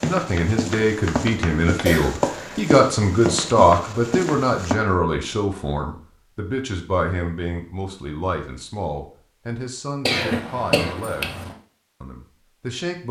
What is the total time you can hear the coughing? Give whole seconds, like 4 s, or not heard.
2 s.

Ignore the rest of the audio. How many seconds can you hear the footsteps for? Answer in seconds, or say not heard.
5 s.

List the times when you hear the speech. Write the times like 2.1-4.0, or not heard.
0.0-11.3, 12.0-13.0.